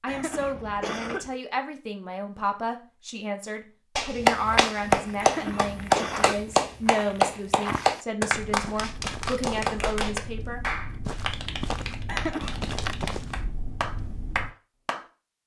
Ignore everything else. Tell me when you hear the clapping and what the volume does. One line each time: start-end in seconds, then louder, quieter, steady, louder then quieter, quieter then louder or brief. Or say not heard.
4.0-15.1 quieter.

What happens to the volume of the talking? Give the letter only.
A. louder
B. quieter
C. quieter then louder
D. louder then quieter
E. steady
E.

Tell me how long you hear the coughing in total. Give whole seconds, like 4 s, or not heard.
3 s.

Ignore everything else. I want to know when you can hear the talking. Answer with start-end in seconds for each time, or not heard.
0.0-10.6.